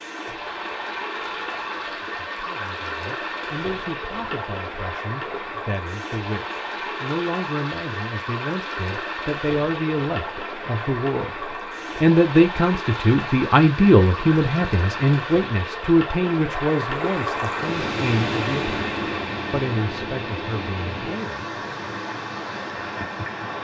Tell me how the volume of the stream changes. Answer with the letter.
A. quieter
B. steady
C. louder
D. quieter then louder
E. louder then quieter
B.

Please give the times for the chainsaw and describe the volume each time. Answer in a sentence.
The chainsaw can't be heard in this clip.